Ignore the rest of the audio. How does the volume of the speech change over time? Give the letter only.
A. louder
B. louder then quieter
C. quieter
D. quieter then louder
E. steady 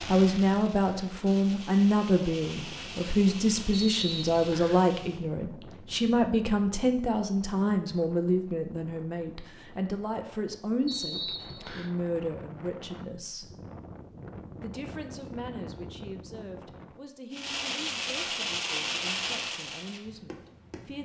C.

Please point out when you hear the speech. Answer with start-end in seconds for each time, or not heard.
0.1-13.6, 14.6-21.0.